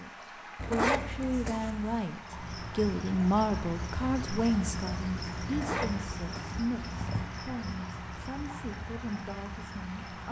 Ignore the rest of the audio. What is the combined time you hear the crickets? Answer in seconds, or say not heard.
8 s.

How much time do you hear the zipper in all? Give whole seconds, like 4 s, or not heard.
3 s.